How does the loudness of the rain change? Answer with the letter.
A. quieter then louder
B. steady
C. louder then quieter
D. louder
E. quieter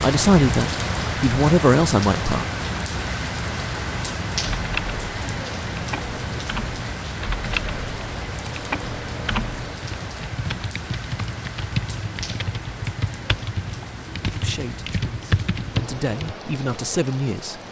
E.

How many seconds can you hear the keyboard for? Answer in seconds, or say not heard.
12 s.